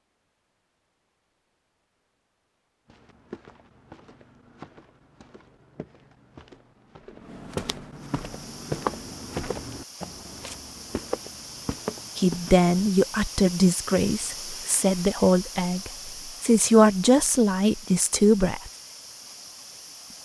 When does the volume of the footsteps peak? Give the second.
9 s.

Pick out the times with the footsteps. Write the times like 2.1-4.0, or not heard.
2.9-12.7.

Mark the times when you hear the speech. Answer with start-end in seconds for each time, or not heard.
12.2-18.7.